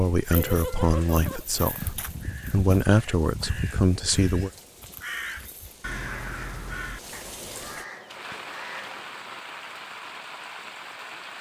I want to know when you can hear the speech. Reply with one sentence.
You can hear the speech from 0.0 to 4.5 s.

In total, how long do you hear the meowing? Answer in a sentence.
The meowing can be heard for 3 seconds in total.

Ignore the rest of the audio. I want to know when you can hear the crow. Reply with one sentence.
The crow can be heard from 0.2 to 9.1 s.